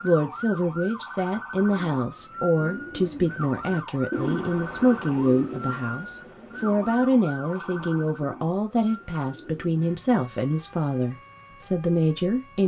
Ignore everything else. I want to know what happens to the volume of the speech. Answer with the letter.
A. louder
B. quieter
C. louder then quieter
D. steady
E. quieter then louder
D.